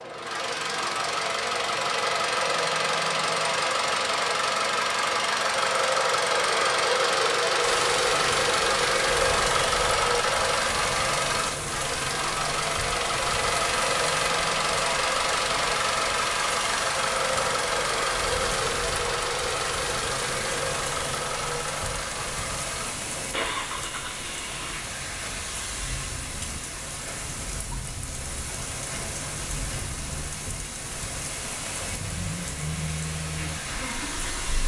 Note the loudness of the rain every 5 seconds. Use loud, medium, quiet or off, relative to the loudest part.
off, loud, loud, loud, loud, loud, loud.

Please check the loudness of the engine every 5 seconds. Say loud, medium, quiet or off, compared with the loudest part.
loud, loud, loud, loud, medium, quiet, quiet.